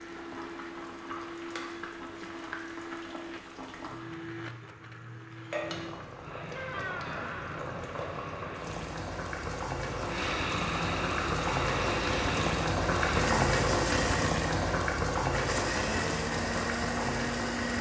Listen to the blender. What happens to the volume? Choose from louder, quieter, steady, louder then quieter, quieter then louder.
louder.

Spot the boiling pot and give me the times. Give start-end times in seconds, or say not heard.
0.0-17.7.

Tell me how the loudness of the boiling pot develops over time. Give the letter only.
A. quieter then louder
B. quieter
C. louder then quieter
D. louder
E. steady
D.